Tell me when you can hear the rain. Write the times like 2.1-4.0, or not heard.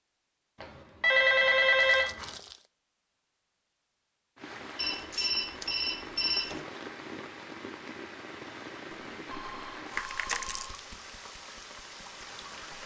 4.3-12.8.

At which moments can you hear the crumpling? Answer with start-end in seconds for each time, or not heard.
1.8-2.7, 5.0-6.8, 9.9-10.7.